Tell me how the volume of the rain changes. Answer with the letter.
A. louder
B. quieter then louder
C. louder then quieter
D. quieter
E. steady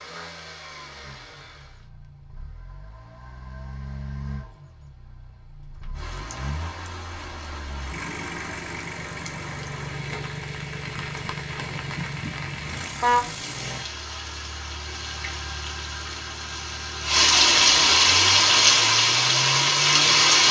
A.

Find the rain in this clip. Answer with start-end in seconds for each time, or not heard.
6.0-20.4.